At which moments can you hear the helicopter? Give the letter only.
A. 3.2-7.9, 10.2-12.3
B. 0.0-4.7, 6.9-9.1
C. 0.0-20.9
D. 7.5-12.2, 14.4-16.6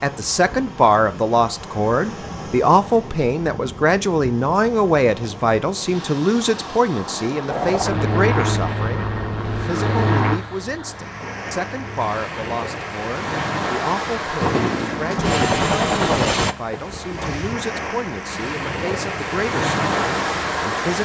D.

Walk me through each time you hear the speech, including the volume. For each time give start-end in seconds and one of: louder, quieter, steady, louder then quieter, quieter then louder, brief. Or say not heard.
0.0-20.9 quieter.